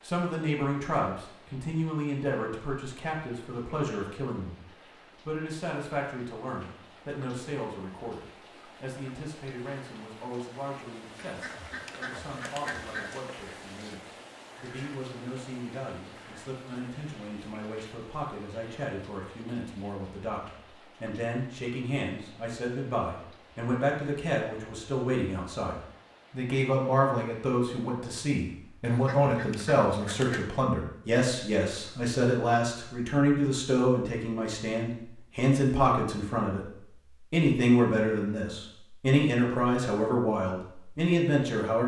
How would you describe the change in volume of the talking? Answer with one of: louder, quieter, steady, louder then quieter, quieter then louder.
quieter then louder.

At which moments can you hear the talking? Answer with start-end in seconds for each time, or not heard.
0.0-41.8.